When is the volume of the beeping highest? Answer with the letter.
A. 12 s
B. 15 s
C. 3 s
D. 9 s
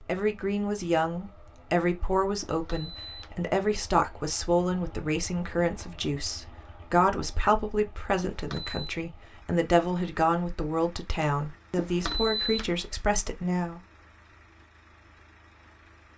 A.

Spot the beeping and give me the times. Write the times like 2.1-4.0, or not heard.
2.4-3.5, 8.2-8.8, 11.8-12.7.